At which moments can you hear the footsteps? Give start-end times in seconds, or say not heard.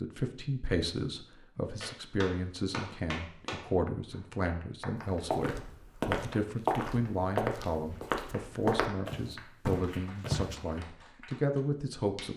5.3-10.6.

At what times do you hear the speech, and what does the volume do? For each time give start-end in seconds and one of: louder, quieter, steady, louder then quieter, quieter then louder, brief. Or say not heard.
0.0-12.3 steady.